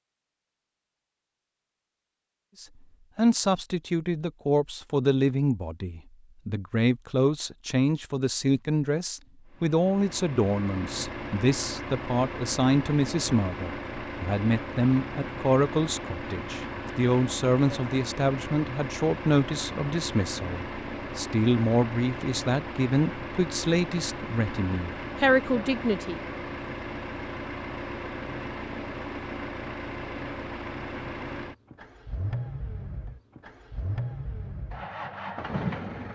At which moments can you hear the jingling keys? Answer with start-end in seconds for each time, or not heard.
not heard.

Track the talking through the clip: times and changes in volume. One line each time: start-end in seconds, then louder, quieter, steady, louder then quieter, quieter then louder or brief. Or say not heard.
2.6-26.2 steady.